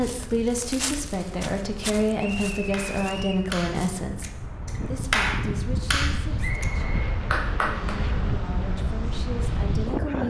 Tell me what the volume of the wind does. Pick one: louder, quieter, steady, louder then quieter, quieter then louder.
louder.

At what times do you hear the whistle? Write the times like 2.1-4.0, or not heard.
2.1-3.5, 6.4-7.1.